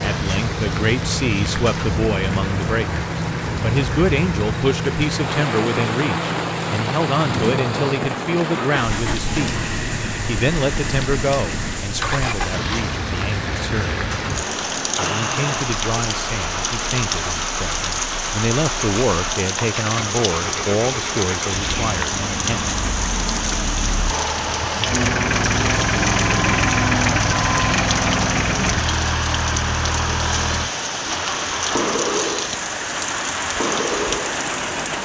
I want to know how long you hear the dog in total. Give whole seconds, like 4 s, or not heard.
not heard.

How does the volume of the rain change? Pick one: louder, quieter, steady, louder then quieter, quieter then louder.
steady.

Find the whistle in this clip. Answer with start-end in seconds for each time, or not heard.
not heard.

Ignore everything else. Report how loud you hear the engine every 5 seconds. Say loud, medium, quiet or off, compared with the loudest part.
medium, medium, medium, medium, medium, loud, medium.